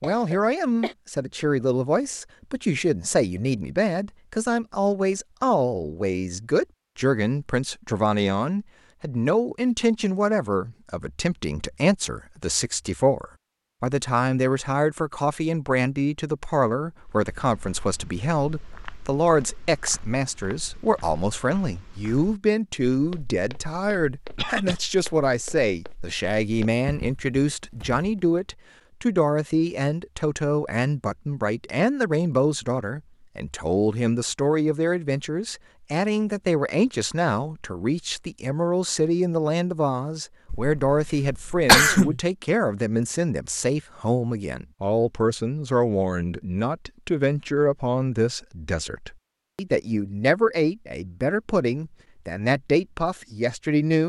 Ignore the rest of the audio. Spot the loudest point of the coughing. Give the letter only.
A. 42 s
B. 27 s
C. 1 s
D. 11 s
A.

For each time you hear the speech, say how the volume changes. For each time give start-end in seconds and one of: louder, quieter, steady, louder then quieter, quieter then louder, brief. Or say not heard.
0.0-54.0 steady.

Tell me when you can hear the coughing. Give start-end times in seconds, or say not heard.
0.0-0.9, 24.4-24.8, 40.5-42.2.